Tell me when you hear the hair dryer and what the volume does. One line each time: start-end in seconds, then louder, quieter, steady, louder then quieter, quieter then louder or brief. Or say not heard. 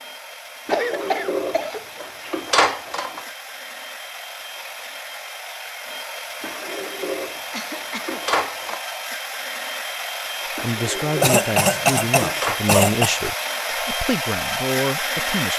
0.0-15.5 louder.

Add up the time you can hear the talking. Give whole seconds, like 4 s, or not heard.
5 s.